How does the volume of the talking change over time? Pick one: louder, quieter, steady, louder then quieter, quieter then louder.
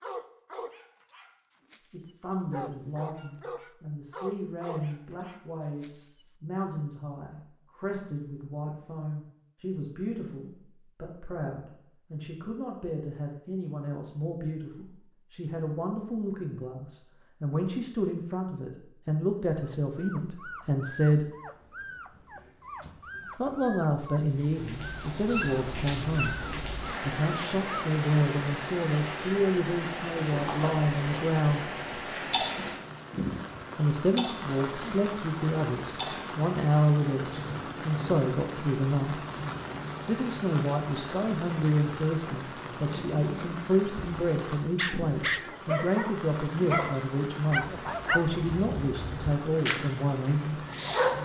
louder.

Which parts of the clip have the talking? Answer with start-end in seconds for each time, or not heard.
1.9-21.2, 23.4-31.6, 33.8-39.2, 40.0-50.6.